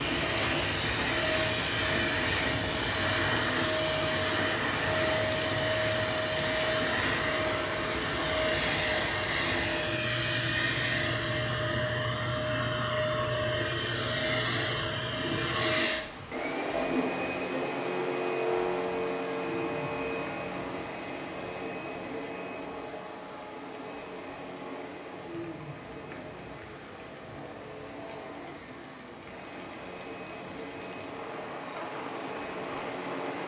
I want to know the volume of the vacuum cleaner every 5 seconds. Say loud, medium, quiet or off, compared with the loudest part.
loud, loud, loud, loud, medium, quiet, medium.